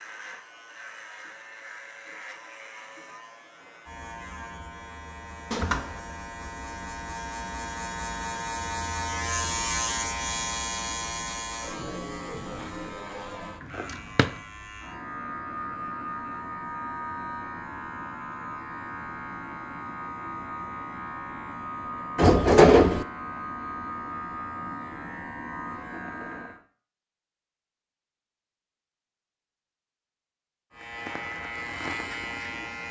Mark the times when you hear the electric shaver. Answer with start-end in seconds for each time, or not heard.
0.0-26.6, 30.7-32.8.